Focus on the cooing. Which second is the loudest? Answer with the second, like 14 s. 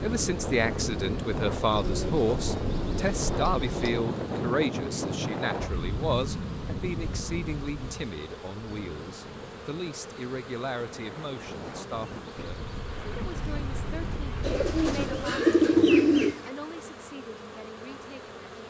16 s.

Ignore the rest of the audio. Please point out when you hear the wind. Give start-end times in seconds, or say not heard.
0.0-15.4.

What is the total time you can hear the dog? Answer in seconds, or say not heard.
not heard.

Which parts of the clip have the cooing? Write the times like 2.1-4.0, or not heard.
1.7-4.0, 14.4-16.5.